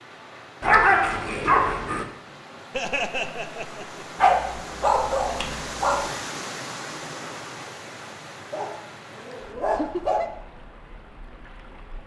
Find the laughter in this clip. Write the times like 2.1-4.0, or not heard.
2.7-4.0, 9.3-10.3.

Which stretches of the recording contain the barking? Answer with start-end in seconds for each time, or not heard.
0.6-2.0, 4.2-6.0, 8.5-10.2.